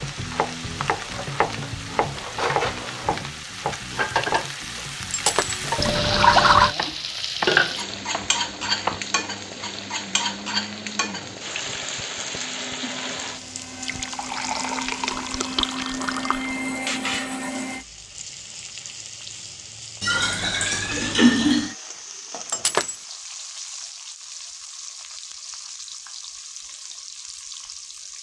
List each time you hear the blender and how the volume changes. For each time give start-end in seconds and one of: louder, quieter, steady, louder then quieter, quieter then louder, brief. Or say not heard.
10.1-17.9 louder.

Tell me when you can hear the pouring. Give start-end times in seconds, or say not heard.
5.8-6.8, 13.8-16.5, 20.0-21.8.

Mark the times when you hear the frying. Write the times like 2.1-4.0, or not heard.
0.0-28.1.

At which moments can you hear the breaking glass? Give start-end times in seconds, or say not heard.
5.1-5.6, 22.4-23.0.